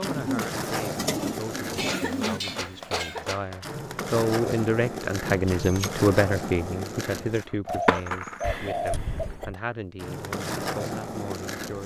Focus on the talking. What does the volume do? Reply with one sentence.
The volume of the talking goes up, then down.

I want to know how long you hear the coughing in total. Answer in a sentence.
The coughing can be heard for 3 seconds in total.